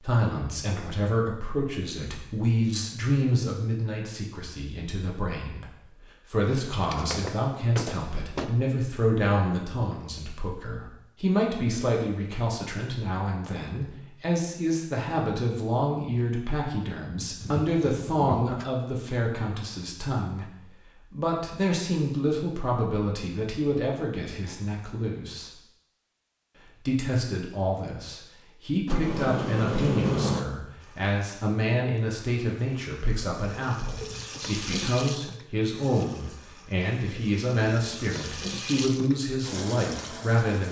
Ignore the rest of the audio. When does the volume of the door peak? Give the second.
30 s.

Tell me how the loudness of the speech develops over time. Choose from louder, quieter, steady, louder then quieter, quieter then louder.
steady.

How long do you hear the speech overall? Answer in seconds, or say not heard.
39 s.